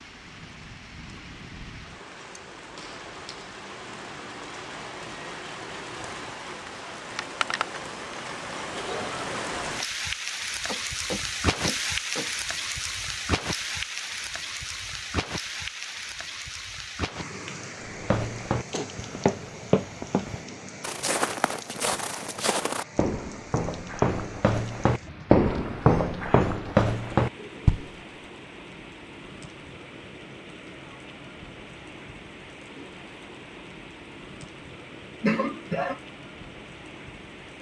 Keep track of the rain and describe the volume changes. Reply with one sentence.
The volume of the rain goes up, then down.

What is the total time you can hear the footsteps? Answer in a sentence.
The footsteps can be heard for 10 seconds in total.